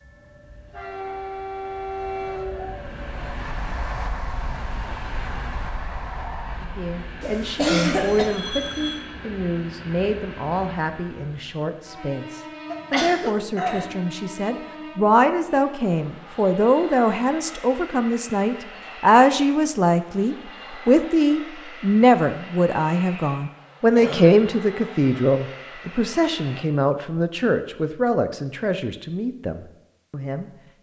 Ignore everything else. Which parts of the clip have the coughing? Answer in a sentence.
You can hear the coughing from 7.2 to 8.4 s, from 12.7 to 14.0 s and from 23.9 to 24.4 s.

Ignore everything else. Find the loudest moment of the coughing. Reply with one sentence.
The volume of the coughing peaks at 8 seconds.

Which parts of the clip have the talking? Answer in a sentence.
The talking can be heard from 6.8 to 30.5 s.